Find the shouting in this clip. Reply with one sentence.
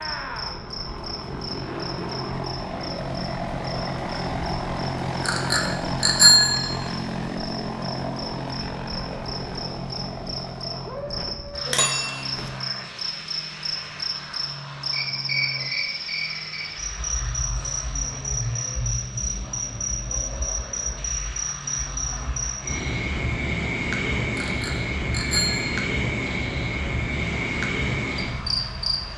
You can't hear the shouting here.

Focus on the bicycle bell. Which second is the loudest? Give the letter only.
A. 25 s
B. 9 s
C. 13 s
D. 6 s
D.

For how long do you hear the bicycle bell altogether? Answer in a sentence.
You can hear the bicycle bell for 4 seconds altogether.